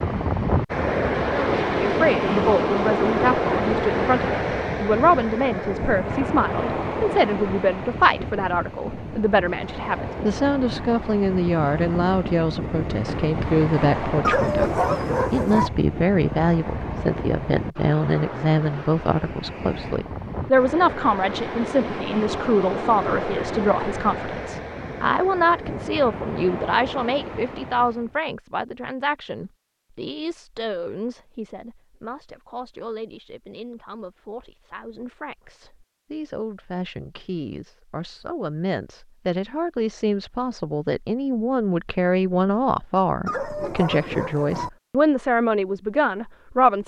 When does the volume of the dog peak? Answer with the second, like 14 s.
15 s.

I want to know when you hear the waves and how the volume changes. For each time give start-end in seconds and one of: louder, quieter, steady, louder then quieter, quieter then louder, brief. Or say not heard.
0.0-28.1 quieter.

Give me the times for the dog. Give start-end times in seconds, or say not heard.
14.2-15.7, 43.2-44.7.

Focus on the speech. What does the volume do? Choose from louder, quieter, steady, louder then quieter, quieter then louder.
quieter then louder.